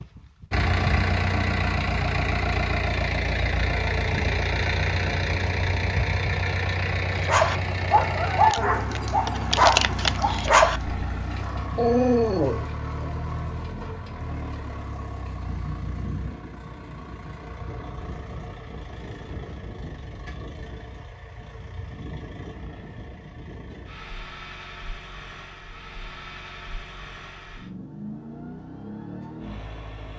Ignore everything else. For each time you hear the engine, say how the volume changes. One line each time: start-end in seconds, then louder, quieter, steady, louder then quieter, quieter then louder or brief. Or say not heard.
0.0-30.1 quieter.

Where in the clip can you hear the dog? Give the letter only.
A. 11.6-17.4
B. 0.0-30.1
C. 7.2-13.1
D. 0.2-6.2
C.